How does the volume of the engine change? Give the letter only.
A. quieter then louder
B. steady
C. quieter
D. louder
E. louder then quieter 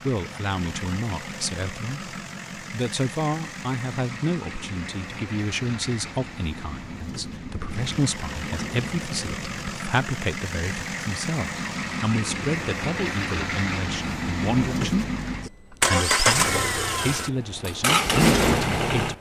D.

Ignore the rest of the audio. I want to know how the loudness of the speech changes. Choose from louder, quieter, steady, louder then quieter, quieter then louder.
steady.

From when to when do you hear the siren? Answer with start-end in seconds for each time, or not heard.
not heard.